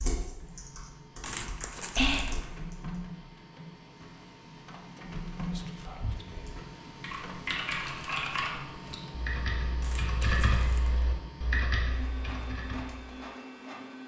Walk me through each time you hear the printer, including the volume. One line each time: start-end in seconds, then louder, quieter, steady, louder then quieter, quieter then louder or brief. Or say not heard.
0.2-14.0 steady.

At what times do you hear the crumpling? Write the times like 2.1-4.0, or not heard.
1.2-2.5, 9.8-11.0.